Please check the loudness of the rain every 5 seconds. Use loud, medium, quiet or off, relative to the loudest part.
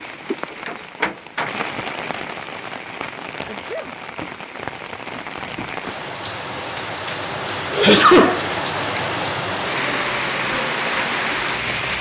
medium, loud, loud.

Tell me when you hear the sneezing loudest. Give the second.
8 s.